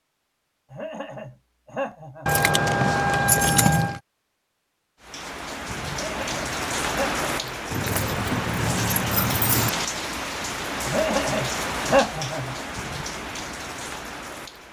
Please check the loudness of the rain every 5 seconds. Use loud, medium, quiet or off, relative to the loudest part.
off, loud, loud.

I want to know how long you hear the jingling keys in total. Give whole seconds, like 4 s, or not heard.
4 s.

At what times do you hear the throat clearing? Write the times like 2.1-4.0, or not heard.
0.7-2.4, 5.9-7.6, 10.8-12.6.